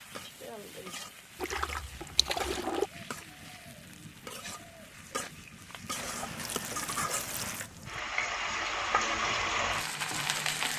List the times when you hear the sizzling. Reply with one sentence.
The sizzling can be heard from 0.0 to 10.7 s.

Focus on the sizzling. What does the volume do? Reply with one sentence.
The volume of the sizzling goes up.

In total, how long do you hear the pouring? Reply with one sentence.
You can hear the pouring for 3 seconds altogether.